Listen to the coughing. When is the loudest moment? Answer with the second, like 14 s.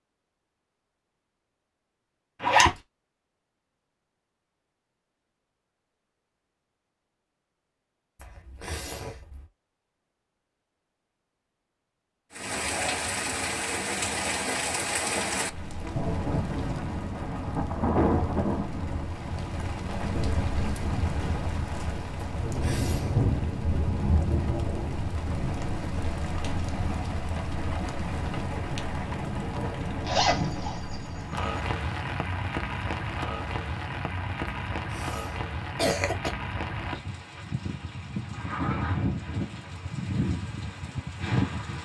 36 s.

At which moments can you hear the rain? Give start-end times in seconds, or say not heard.
12.3-41.8.